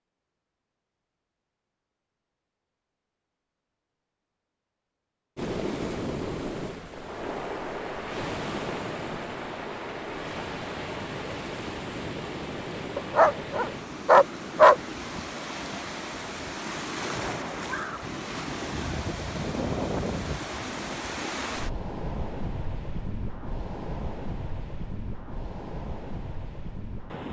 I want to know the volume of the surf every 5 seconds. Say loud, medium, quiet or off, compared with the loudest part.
off, loud, loud, loud, loud, medium.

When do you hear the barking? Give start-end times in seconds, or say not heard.
12.9-14.8.